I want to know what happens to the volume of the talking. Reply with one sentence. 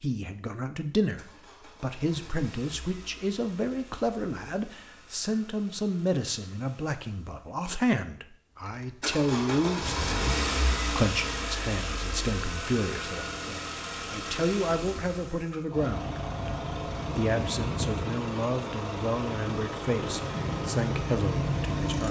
The loudness of the talking stays about the same.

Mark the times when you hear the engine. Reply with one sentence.
You can hear the engine from 0.9 to 7.7 s and from 8.7 to 22.0 s.